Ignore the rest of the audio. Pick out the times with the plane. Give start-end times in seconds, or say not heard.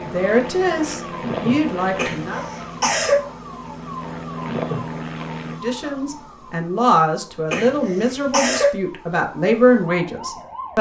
0.0-5.6.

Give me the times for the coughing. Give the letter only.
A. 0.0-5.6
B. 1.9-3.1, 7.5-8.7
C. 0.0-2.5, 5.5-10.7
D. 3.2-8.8
B.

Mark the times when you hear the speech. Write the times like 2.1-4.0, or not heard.
0.0-2.5, 5.5-10.7.